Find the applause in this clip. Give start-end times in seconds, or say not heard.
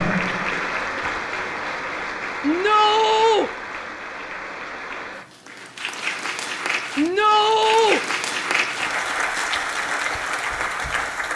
0.0-11.3.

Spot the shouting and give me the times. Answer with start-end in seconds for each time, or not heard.
2.4-3.5, 7.0-8.0.